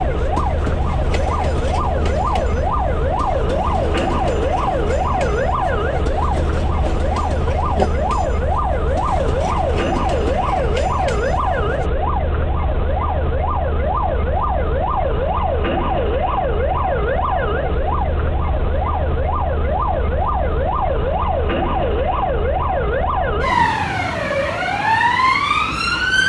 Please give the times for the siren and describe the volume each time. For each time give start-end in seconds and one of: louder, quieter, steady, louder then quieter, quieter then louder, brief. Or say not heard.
0.0-26.2 steady.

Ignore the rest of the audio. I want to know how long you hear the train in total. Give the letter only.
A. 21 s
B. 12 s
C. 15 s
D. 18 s
B.